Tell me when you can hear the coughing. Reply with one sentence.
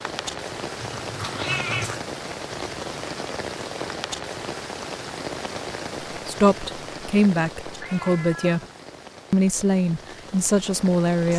You can't hear the coughing here.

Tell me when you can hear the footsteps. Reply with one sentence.
The footsteps can't be heard in this clip.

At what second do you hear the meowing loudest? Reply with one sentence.
The volume of the meowing peaks at 2 seconds.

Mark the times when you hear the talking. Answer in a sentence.
The talking can be heard from 6.2 to 8.6 s and from 9.3 to 11.3 s.